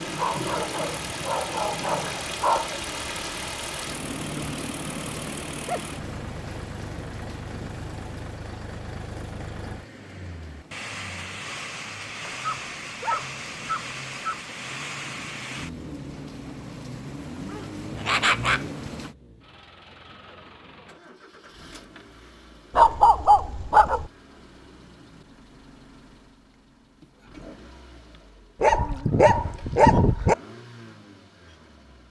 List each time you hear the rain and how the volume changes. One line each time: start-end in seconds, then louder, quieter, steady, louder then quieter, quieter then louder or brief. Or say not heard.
0.0-19.1 quieter then louder.